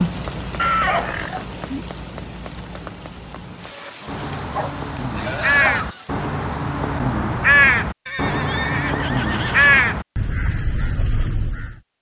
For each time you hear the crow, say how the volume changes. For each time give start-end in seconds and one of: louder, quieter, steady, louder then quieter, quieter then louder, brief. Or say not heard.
3.7-11.8 louder then quieter.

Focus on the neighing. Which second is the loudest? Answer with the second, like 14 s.
1 s.